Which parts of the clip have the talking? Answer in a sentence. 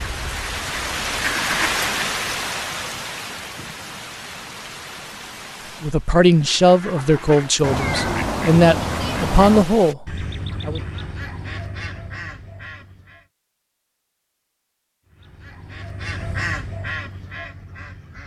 The talking can be heard from 5.8 to 10.8 s.